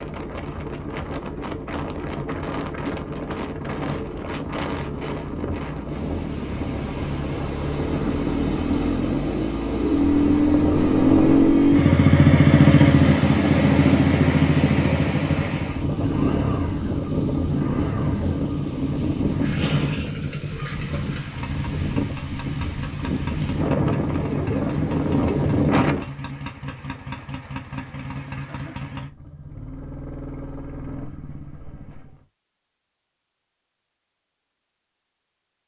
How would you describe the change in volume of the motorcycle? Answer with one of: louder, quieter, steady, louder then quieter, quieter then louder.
louder then quieter.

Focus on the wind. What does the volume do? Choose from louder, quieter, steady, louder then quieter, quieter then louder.
louder.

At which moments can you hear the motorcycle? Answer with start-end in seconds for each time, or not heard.
0.0-32.2.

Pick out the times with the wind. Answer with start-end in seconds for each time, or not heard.
0.0-26.1.